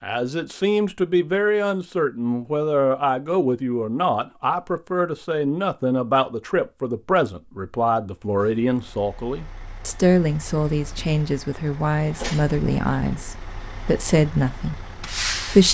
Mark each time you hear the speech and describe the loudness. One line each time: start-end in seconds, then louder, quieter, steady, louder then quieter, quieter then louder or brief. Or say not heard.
0.0-15.6 steady.